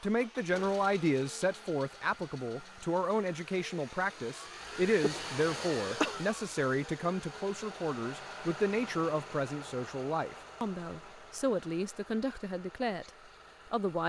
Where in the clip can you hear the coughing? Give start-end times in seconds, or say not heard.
5.0-6.2.